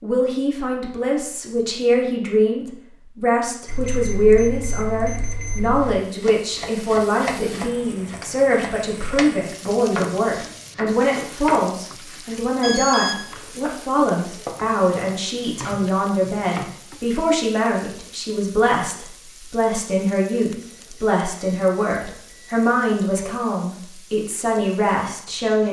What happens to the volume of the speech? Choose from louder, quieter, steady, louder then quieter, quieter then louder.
steady.